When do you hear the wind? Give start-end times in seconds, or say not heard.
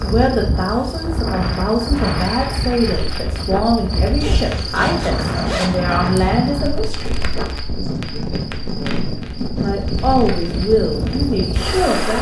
0.0-12.1.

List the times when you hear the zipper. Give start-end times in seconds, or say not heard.
4.2-5.8.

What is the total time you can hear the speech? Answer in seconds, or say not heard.
10 s.